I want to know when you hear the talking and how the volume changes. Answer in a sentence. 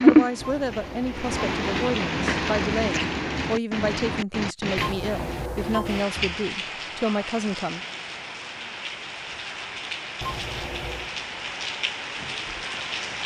The talking can be heard from 0.0 to 7.8 s, at a steady volume.